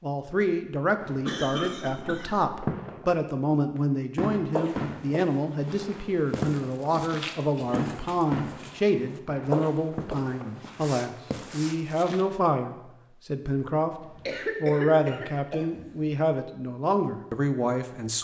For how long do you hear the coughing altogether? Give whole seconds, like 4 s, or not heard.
4 s.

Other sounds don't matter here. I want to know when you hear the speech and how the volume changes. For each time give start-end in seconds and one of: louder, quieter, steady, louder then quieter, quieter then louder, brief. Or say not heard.
0.0-18.1 steady.